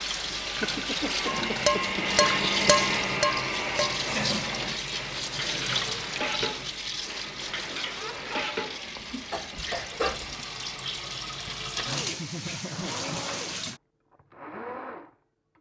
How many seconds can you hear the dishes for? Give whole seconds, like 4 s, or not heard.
9 s.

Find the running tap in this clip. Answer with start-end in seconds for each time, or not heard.
0.0-13.8.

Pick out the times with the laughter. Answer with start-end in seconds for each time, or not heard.
0.6-3.2, 7.8-8.5, 12.2-13.1.